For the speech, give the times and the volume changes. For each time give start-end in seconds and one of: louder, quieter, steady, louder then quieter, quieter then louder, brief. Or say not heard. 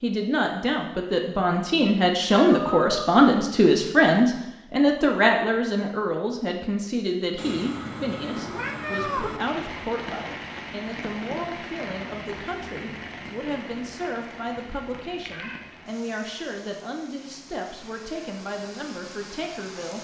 0.0-20.0 quieter.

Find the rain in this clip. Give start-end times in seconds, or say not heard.
9.3-20.0.